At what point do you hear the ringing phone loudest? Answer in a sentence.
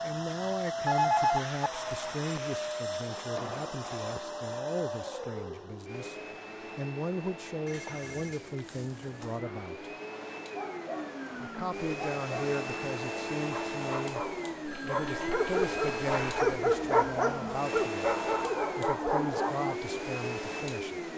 The loudest moment of the ringing phone is at 1 second.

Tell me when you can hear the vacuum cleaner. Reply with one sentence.
You can hear the vacuum cleaner from 0.0 to 21.1 s.